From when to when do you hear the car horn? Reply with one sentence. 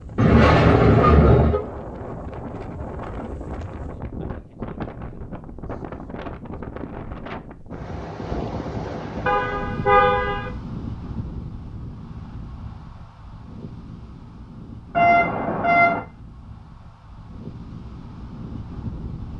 The car horn can be heard from 0.1 to 1.6 s, from 9.2 to 10.5 s and from 14.9 to 16.0 s.